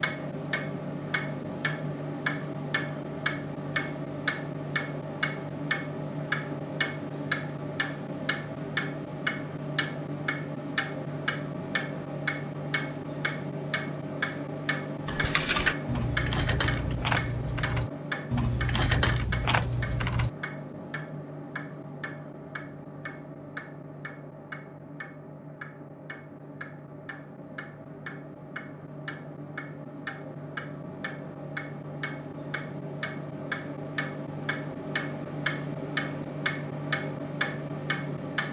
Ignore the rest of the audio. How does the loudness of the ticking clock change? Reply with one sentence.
The volume of the ticking clock goes down, then up.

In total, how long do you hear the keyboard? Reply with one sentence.
The keyboard can be heard for 5 seconds in total.